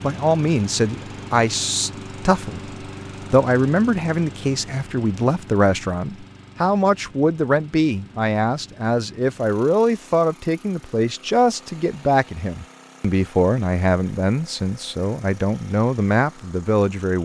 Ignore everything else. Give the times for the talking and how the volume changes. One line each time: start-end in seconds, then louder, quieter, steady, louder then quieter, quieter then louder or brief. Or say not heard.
0.0-17.2 steady.